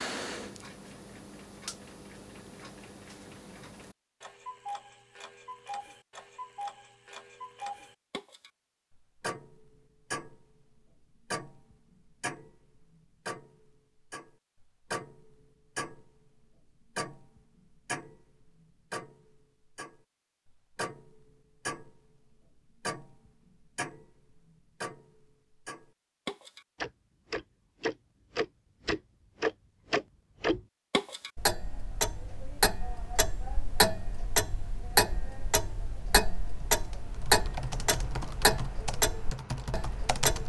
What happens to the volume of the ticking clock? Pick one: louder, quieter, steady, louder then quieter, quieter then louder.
louder.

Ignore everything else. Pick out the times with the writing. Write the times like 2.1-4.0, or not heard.
not heard.